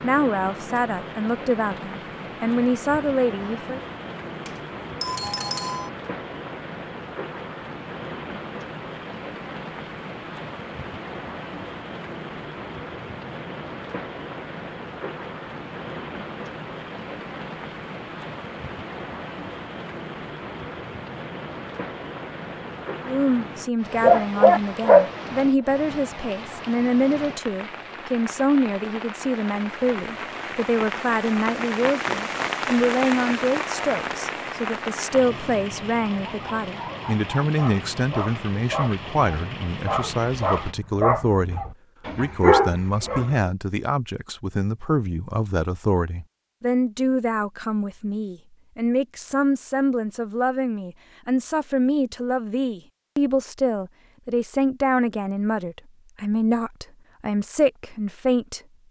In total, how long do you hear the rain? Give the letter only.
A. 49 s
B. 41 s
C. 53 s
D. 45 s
B.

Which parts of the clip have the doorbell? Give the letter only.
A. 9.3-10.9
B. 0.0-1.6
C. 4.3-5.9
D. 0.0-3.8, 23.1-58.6
C.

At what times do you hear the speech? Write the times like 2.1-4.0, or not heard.
0.0-3.8, 23.1-58.6.